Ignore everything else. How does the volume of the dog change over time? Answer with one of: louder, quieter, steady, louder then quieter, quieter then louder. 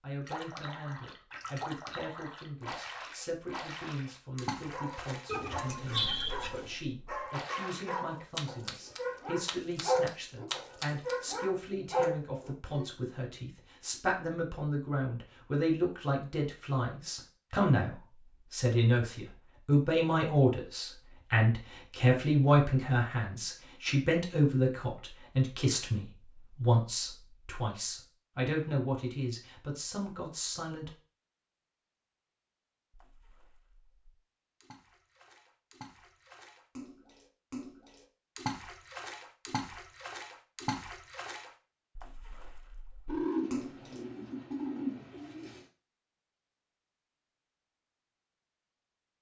louder.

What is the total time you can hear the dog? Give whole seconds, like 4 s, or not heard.
8 s.